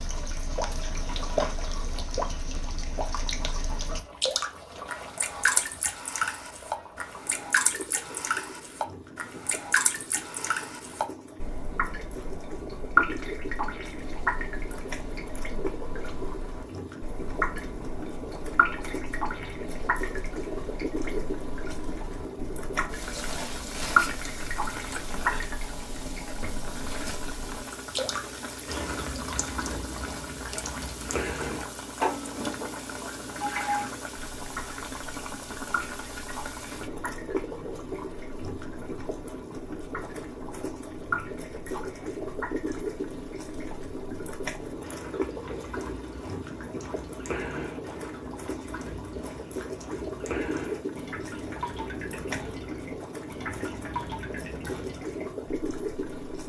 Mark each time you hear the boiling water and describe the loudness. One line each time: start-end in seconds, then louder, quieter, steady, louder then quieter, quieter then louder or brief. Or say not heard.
0.0-56.4 louder.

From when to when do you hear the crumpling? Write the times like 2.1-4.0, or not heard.
0.9-1.6.